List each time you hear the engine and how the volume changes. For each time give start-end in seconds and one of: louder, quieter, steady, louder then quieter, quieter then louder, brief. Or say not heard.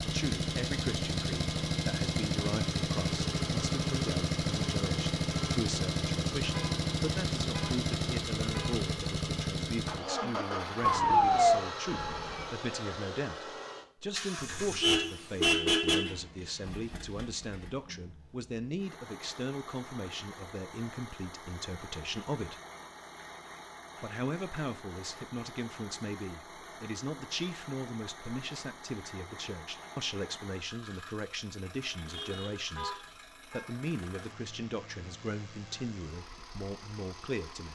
0.0-37.6 quieter.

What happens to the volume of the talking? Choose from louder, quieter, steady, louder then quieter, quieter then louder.
steady.